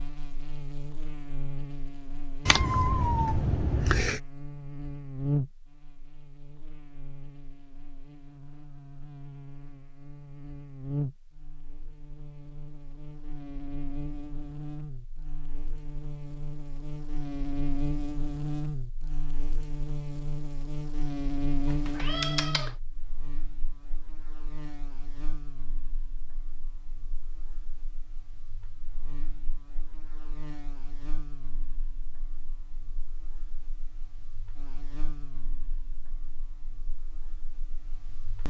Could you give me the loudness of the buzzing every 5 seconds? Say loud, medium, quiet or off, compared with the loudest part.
medium, loud, loud, loud, loud, quiet, quiet, quiet.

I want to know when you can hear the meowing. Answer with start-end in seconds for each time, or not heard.
2.5-4.2, 21.6-22.8.